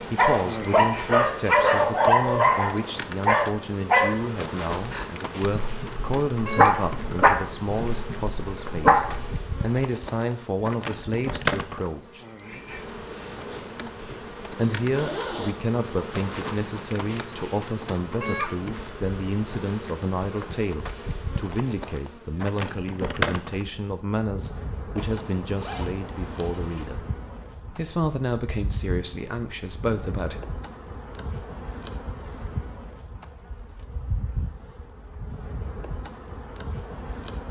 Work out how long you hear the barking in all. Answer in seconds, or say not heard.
9 s.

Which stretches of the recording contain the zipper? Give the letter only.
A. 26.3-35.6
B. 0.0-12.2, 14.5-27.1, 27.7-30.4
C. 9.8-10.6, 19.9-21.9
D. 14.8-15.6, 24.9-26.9
D.